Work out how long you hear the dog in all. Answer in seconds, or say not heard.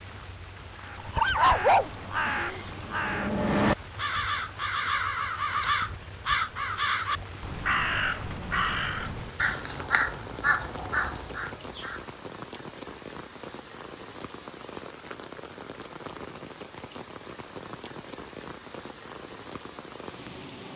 2 s.